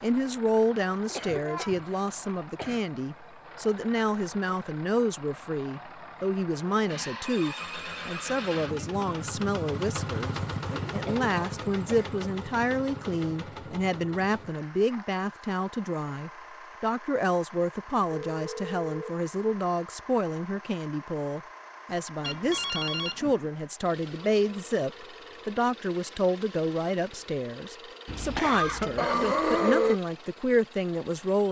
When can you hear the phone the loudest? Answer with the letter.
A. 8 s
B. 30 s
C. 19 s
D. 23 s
D.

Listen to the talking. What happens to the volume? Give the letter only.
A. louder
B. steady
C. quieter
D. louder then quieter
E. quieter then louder
B.